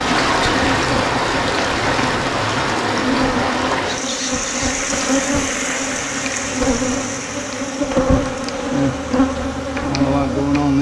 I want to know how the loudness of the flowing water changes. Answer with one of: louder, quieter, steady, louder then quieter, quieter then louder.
quieter.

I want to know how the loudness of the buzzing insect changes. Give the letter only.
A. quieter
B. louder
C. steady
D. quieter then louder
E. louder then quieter
B.